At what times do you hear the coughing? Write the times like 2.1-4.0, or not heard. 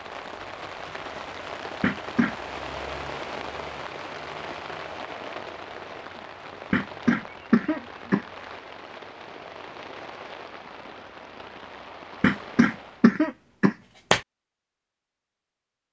1.8-2.4, 6.7-8.2, 12.2-14.2.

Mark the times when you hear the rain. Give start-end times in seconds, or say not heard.
0.0-13.2.